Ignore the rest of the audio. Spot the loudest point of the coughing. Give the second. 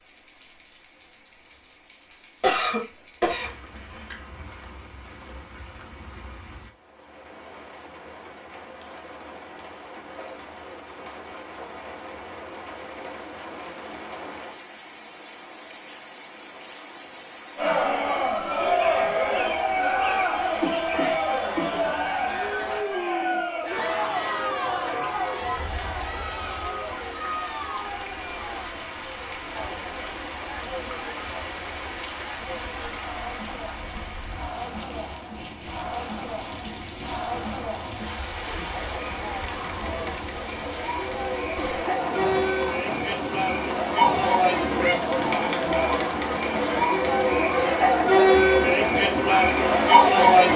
3 s.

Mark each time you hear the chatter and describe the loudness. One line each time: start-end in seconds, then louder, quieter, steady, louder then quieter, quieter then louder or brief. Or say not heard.
17.6-50.5 quieter then louder.